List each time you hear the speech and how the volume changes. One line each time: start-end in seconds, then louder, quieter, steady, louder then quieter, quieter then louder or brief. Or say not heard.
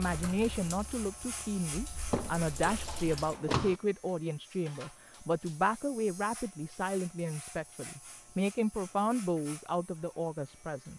0.0-10.9 steady.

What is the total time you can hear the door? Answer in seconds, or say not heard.
2 s.